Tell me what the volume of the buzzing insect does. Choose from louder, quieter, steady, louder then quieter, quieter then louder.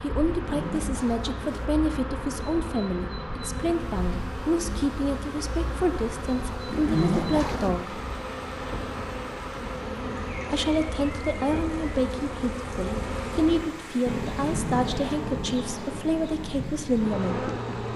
steady.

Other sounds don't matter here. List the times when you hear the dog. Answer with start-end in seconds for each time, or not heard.
not heard.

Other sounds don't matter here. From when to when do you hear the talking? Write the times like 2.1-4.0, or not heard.
0.0-8.0, 10.5-17.5.